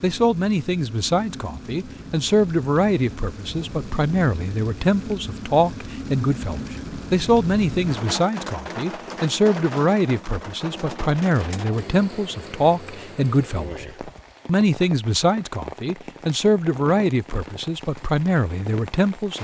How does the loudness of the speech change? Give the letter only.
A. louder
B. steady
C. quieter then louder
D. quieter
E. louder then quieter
B.